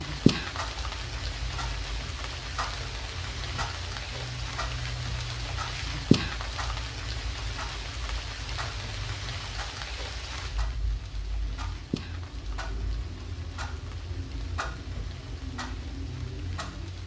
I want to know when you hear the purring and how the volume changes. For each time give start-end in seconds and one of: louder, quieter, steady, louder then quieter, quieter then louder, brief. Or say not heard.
not heard.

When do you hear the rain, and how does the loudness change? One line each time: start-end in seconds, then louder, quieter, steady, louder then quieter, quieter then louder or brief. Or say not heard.
0.0-17.0 louder then quieter.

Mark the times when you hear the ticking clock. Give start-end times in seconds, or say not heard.
0.0-17.0.